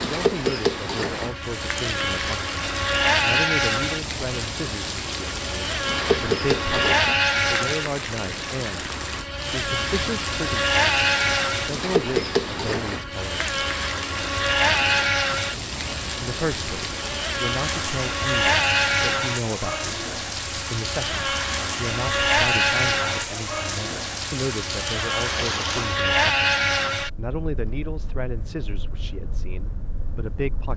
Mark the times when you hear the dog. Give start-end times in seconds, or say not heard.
not heard.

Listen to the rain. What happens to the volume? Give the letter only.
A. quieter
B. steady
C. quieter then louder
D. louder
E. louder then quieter
B.